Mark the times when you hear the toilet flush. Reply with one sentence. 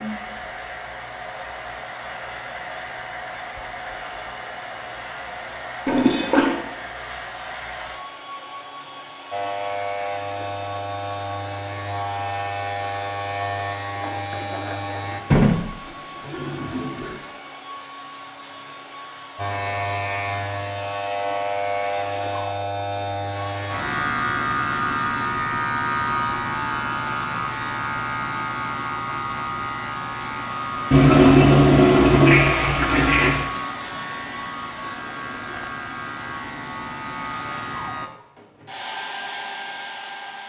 You can hear the toilet flush from 5.8 to 6.5 s, from 15.3 to 17.1 s and from 30.9 to 33.5 s.